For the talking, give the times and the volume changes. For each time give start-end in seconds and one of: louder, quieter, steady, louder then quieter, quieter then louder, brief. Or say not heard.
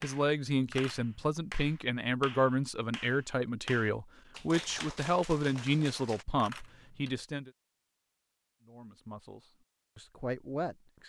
0.0-7.5 steady
8.6-11.0 brief.